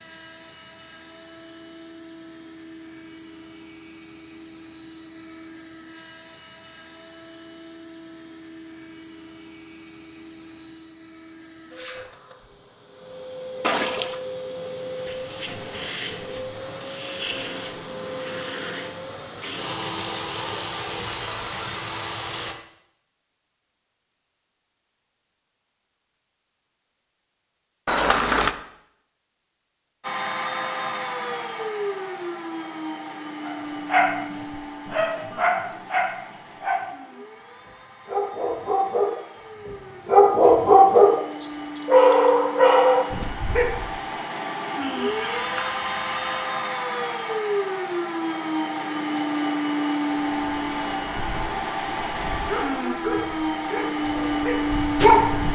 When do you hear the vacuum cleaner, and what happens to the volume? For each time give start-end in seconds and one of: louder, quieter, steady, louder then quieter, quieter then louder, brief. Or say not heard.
0.0-22.6 louder
30.0-55.5 quieter then louder.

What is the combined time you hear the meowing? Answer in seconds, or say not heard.
3 s.